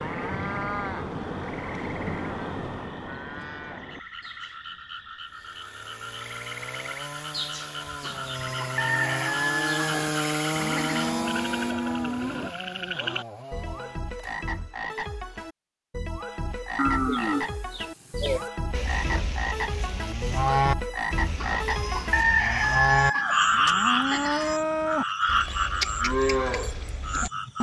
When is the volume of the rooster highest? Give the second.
22 s.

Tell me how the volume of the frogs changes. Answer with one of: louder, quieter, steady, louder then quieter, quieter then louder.
louder.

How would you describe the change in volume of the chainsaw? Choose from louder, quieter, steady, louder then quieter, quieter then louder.
louder then quieter.